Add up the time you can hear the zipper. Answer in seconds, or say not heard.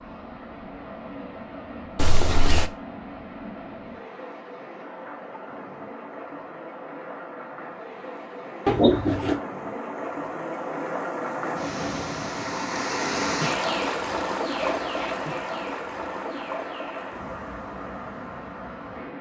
2 s.